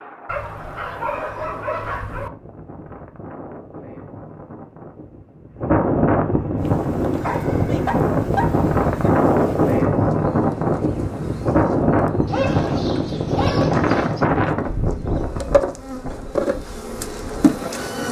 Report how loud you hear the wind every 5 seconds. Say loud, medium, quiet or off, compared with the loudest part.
quiet, loud, loud, quiet.